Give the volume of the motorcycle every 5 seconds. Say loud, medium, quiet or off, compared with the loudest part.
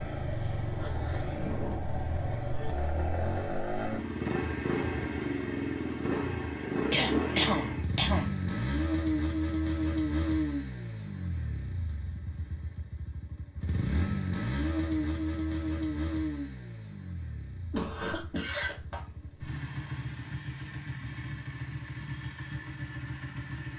loud, loud, loud, medium, medium.